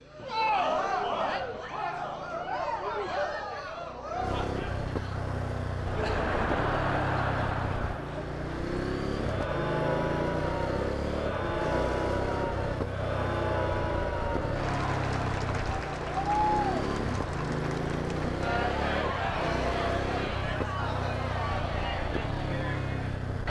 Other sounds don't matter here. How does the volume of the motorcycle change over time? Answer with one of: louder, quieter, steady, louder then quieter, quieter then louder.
louder.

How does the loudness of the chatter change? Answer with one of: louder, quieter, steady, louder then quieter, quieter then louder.
steady.